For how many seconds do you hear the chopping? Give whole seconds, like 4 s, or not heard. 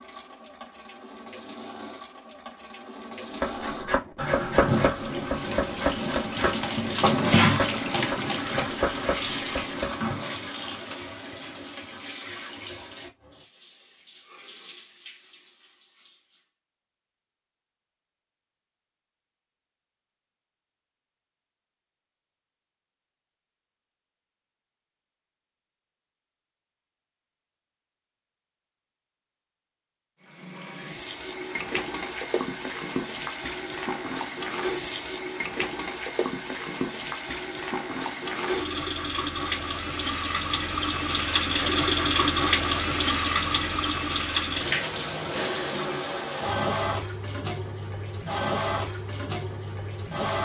7 s.